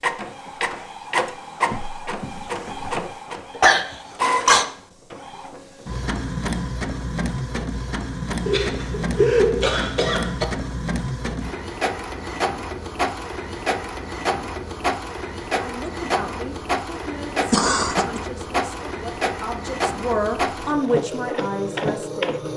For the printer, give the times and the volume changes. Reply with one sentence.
You can hear the printer from 0.0 to 22.5 s, at a steady volume.